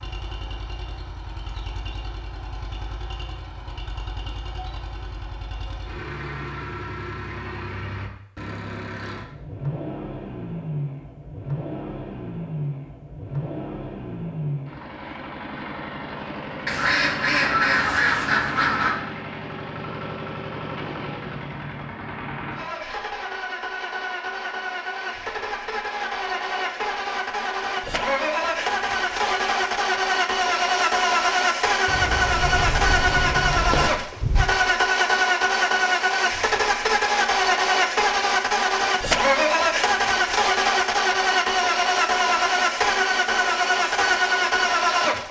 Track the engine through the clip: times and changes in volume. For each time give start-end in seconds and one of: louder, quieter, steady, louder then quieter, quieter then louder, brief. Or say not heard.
0.0-45.2 louder.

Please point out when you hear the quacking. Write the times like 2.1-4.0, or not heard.
16.6-19.0, 31.9-33.9.